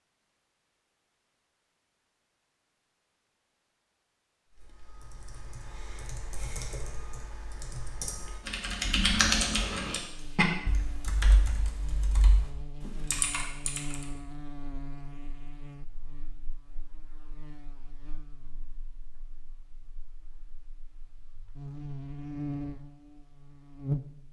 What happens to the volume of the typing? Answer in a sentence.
The loudness of the typing goes up, then down.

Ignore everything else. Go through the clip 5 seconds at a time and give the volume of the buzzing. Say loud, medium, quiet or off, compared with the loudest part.
off, off, medium, quiet, loud.